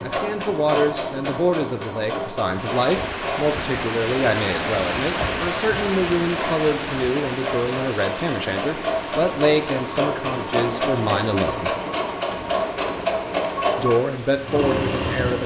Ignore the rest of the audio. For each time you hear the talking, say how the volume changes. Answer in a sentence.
You can hear the talking from 0.0 to 11.7 s, at a steady volume; and briefly from 13.8 to 15.4 s.